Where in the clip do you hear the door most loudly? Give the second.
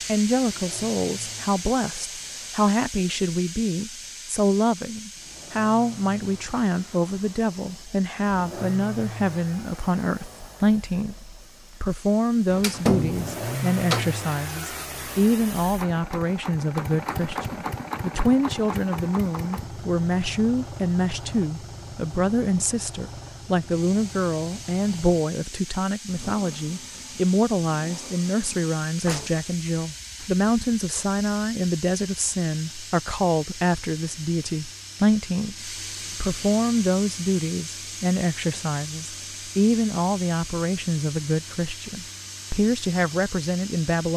13 s.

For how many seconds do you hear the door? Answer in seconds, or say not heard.
2 s.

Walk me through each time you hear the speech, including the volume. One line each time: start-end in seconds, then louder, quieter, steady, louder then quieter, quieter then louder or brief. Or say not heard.
0.1-44.1 steady.